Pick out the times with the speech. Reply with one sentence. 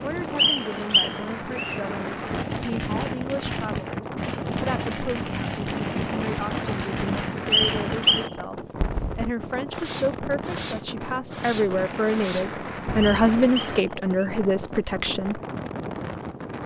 The speech can be heard from 0.0 to 15.4 s.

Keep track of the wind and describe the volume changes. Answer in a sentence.
The loudness of the wind stays about the same.